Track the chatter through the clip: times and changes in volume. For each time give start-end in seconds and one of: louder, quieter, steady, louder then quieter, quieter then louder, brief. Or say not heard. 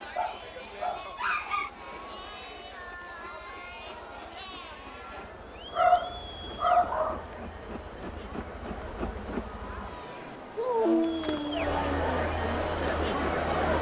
0.0-13.7 louder.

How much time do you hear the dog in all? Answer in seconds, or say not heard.
5 s.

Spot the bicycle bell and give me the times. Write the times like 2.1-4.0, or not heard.
not heard.